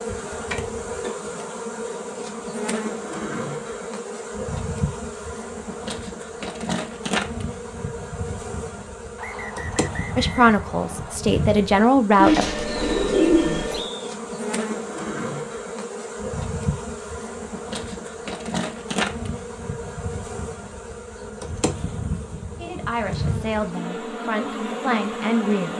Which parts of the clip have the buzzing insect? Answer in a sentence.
You can hear the buzzing insect from 0.0 to 25.7 s.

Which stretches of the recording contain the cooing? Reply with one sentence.
The cooing can be heard from 12.2 to 13.8 s.